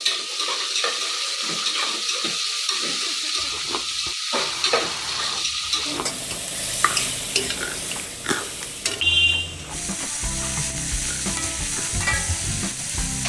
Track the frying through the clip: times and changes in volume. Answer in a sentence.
The frying can be heard from 0.0 to 13.2 s, at a steady volume.